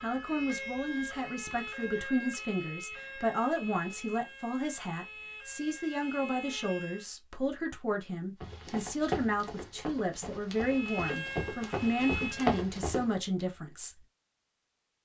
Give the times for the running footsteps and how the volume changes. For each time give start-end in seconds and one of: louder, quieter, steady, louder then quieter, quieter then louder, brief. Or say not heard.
8.4-13.1 quieter then louder.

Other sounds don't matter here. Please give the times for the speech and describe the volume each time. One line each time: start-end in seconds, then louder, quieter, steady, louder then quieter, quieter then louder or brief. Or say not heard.
0.0-14.1 steady.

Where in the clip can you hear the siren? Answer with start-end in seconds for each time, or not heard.
0.0-7.2, 10.5-12.6.